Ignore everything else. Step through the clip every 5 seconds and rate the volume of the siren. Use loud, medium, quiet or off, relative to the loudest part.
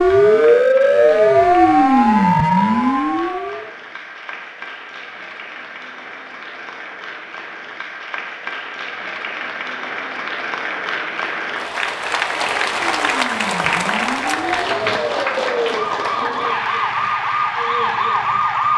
loud, off, quiet, medium.